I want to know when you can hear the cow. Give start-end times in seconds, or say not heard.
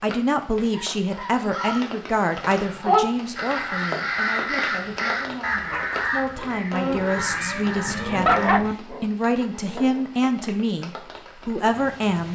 6.7-8.8.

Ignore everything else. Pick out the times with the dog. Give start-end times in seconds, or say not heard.
0.7-1.8, 5.7-6.6, 8.2-10.1.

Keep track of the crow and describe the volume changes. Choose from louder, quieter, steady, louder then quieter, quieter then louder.
louder then quieter.